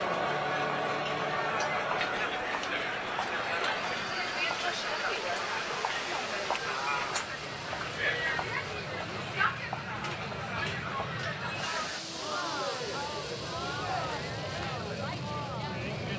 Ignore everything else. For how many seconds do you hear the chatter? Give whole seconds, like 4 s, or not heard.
16 s.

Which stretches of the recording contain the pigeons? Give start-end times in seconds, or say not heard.
not heard.